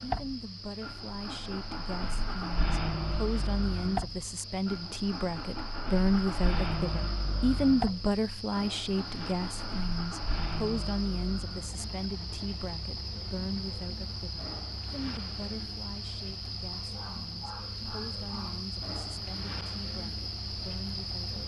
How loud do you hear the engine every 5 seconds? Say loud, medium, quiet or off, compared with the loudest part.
loud, loud, medium, quiet, quiet.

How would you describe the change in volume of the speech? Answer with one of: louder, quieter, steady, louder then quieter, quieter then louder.
louder then quieter.